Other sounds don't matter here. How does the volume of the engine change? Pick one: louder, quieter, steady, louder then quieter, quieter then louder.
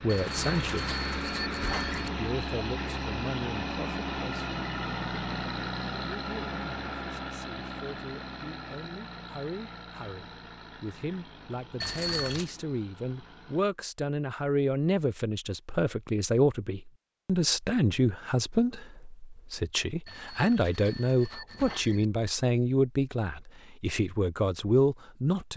quieter.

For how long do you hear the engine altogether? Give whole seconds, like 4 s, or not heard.
14 s.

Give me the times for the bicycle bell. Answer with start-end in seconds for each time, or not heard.
0.1-2.1, 11.8-12.6, 20.1-22.1.